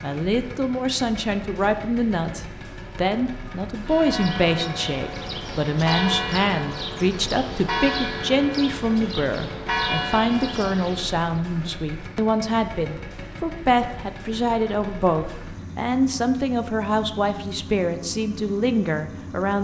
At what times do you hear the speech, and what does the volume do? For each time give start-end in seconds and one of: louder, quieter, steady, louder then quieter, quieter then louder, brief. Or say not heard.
0.0-19.5 steady.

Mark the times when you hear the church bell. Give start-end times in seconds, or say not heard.
3.9-11.2.